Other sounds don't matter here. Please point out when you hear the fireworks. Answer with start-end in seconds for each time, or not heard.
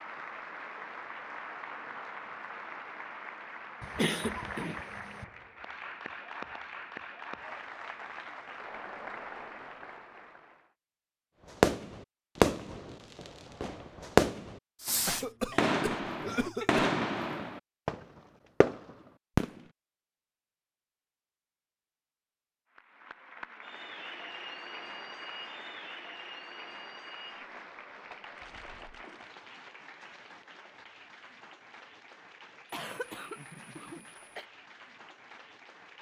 11.6-18.0, 18.6-19.5.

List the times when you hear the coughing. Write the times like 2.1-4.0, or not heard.
3.8-5.2, 14.8-16.9, 32.6-34.5.